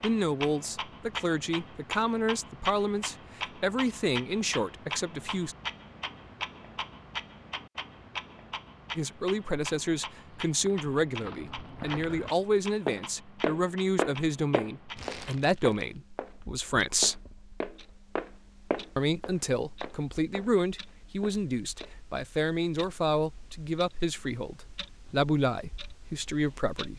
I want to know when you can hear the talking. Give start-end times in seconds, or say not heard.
0.0-5.5, 8.9-17.2, 18.9-26.9.